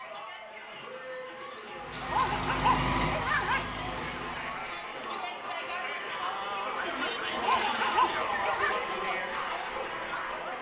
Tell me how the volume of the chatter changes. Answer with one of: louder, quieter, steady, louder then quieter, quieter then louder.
louder.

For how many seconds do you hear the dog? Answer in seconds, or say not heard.
3 s.